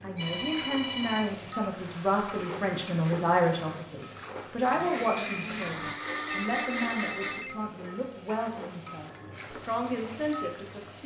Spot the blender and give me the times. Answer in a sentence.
The blender can be heard from 1.7 to 7.5 s.